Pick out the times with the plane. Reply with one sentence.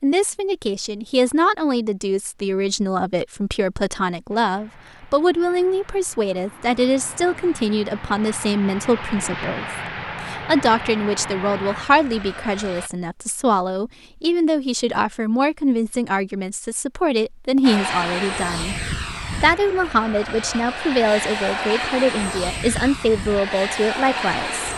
The plane can be heard from 4.3 to 12.9 s and from 17.6 to 24.7 s.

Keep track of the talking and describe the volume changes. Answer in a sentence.
The loudness of the talking stays about the same.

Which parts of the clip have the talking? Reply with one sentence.
The talking can be heard from 0.0 to 18.8 s and from 19.4 to 24.7 s.